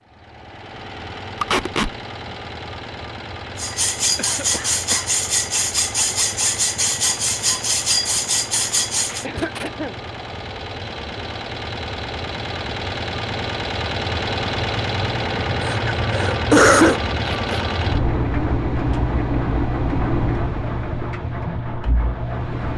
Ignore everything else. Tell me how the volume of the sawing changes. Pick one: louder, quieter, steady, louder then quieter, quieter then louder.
steady.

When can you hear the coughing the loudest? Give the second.
17 s.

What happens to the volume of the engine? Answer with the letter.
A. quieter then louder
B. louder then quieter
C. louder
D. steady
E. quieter
C.